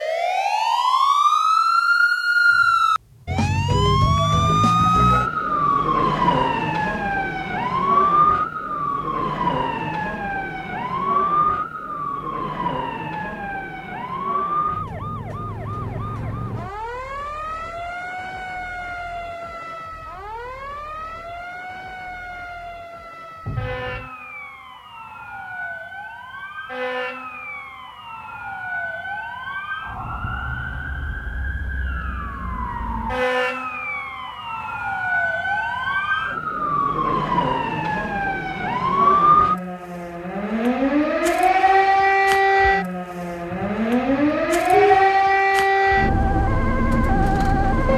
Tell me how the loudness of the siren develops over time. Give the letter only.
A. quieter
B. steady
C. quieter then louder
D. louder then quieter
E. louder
C.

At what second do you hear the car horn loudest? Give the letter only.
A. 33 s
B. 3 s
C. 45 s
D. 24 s
C.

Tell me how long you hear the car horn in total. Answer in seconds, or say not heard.
4 s.